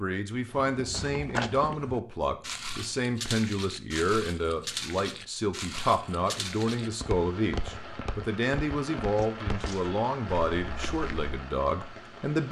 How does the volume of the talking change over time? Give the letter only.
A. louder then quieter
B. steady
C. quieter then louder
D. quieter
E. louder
B.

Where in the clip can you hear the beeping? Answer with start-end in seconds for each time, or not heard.
not heard.